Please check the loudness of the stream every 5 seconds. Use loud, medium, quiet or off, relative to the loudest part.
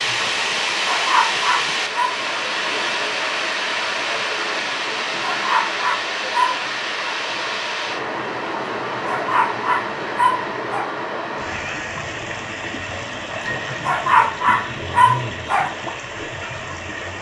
loud, loud, medium, medium.